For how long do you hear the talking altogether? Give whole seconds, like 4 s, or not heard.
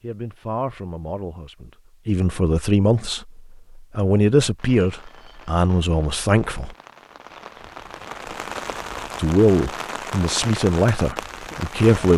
10 s.